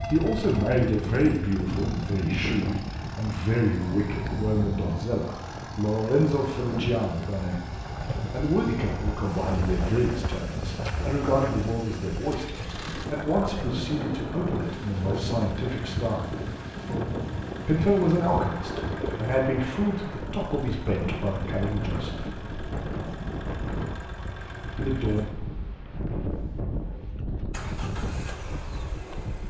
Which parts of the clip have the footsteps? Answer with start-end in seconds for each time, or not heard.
not heard.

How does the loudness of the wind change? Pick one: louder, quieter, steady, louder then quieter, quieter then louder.
steady.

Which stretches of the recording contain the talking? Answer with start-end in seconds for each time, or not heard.
0.0-16.4, 17.6-22.3, 24.8-25.2.